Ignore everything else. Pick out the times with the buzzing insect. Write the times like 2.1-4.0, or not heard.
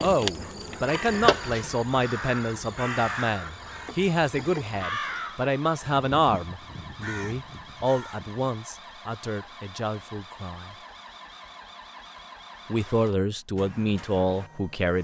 0.0-4.8.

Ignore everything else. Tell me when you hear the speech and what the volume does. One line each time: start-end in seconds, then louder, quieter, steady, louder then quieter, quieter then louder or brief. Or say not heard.
0.0-10.8 quieter
12.7-14.9 brief.